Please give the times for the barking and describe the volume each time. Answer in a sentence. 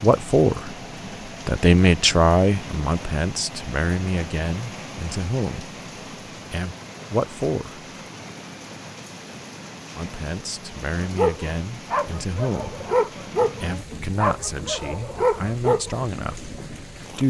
You can hear the barking from 11.0 to 16.1 s, at a steady volume.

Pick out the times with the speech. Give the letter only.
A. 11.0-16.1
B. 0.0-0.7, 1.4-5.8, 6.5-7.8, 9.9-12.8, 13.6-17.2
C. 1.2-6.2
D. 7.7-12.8
B.